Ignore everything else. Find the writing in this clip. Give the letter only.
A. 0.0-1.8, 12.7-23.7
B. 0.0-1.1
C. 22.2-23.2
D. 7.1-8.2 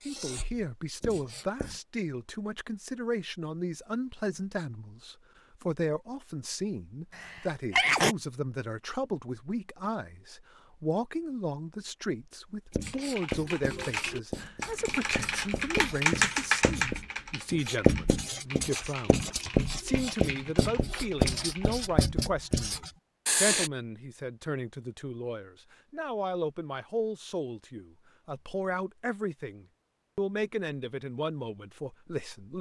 A.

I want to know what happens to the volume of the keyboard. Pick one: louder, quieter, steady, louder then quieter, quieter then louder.
louder then quieter.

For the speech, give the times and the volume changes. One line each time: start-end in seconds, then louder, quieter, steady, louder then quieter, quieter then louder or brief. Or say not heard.
0.1-32.5 steady.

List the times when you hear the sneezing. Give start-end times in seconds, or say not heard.
7.1-8.2.